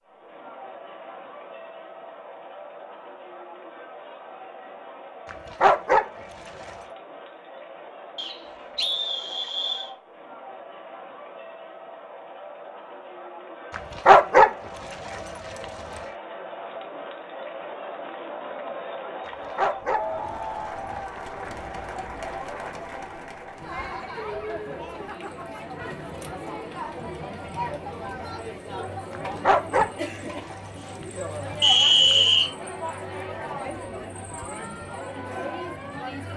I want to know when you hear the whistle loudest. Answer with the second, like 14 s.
32 s.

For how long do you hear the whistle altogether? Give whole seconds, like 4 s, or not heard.
3 s.